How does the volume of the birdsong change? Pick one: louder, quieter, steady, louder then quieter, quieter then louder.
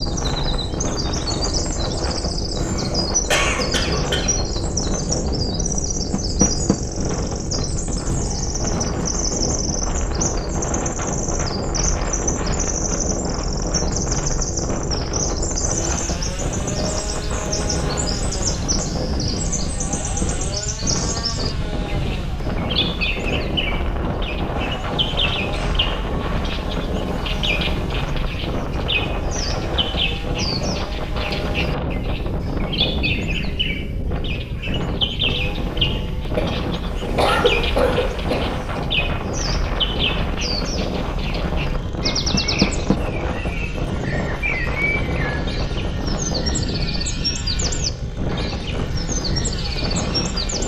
steady.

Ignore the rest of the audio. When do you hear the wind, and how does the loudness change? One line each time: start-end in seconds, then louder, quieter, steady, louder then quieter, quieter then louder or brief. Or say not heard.
0.0-50.6 steady.